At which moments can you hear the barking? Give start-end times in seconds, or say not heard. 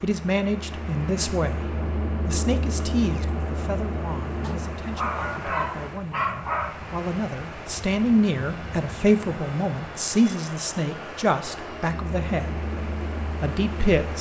4.4-6.9.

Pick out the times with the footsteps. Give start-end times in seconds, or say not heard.
not heard.